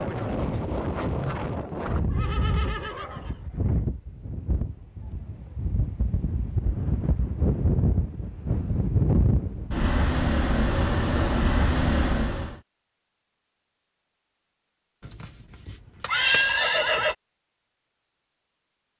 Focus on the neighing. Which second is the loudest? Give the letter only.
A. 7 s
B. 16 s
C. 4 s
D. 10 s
B.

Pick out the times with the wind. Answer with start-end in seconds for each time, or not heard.
0.0-12.6.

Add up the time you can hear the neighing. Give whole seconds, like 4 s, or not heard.
4 s.